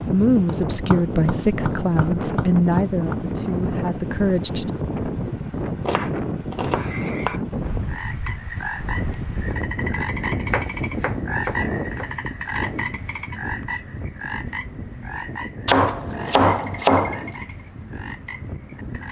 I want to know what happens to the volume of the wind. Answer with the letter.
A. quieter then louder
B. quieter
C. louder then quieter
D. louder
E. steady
B.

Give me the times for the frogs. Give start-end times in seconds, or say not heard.
6.7-19.0.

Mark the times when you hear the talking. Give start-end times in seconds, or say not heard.
0.1-4.8.